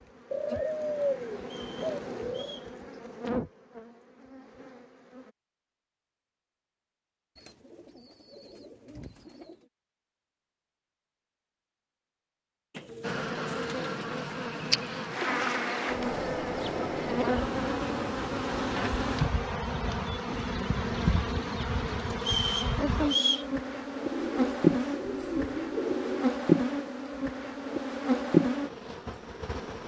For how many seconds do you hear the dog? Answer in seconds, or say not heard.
not heard.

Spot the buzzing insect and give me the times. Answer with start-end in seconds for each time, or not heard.
0.0-5.3, 13.0-29.8.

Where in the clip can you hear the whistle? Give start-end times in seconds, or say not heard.
1.4-2.7, 22.2-23.4.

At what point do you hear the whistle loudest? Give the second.
23 s.